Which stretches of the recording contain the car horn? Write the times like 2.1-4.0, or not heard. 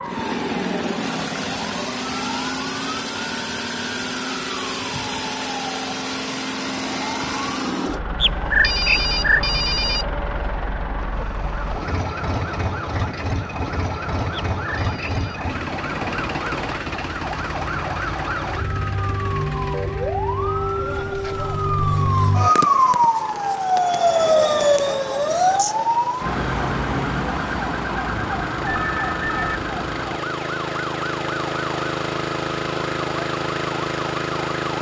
not heard.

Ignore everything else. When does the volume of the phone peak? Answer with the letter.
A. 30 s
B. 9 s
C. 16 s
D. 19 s
B.